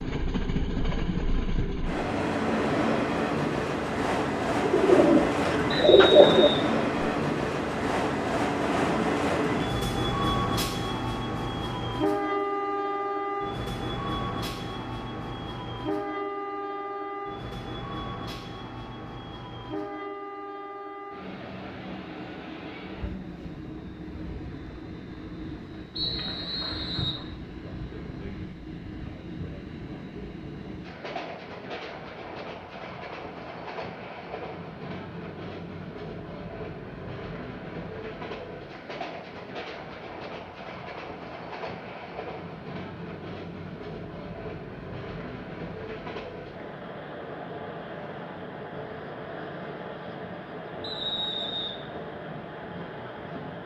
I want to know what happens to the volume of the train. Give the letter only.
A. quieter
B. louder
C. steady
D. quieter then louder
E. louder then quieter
A.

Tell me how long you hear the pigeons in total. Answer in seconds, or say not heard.
2 s.